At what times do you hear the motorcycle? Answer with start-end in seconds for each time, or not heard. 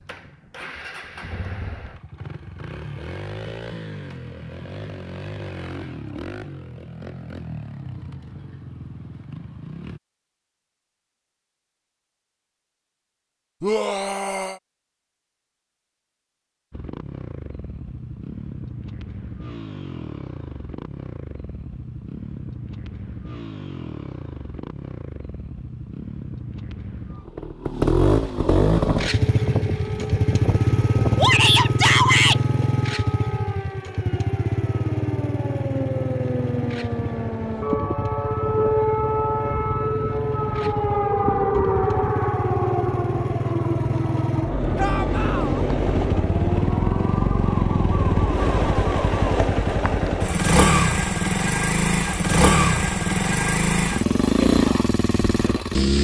0.0-10.0, 16.7-55.9.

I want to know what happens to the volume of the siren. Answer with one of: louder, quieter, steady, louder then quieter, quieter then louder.
louder then quieter.